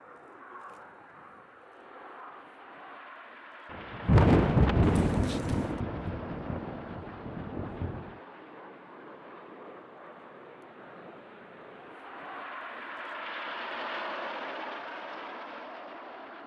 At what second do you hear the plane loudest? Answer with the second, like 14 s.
14 s.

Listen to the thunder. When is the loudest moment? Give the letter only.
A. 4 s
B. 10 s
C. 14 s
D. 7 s
A.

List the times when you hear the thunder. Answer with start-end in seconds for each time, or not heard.
3.7-8.1.